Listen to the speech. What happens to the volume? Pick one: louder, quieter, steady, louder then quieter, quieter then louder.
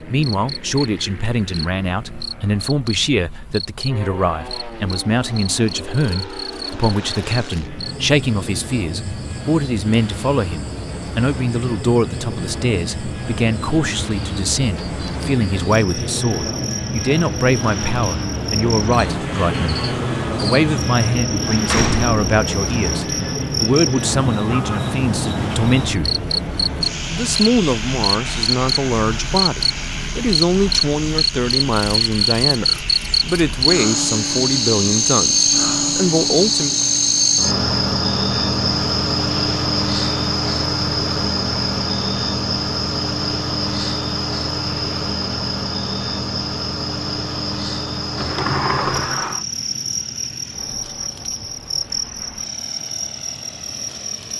steady.